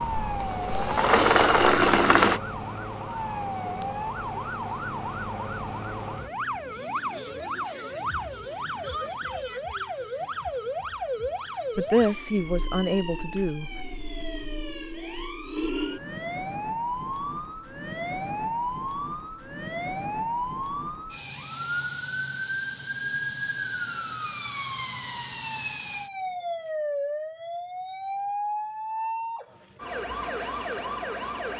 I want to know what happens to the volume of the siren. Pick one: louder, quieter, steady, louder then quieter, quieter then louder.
steady.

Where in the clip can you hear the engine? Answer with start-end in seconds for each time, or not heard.
0.2-2.4.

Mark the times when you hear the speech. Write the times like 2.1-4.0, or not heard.
11.8-13.8.